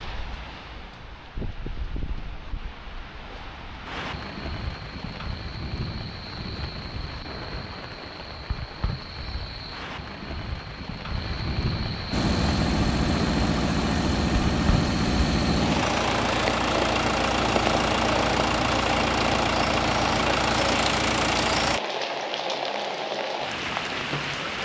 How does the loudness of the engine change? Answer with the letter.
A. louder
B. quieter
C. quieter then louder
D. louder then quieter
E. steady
E.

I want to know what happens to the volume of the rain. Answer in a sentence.
The volume of the rain goes up.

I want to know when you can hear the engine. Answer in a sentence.
You can hear the engine from 12.1 to 21.8 s.